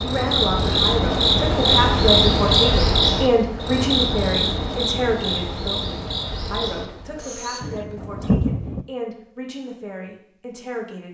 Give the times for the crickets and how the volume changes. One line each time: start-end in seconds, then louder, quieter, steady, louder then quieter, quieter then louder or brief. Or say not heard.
0.0-7.6 quieter.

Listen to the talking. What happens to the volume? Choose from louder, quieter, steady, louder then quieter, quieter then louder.
quieter.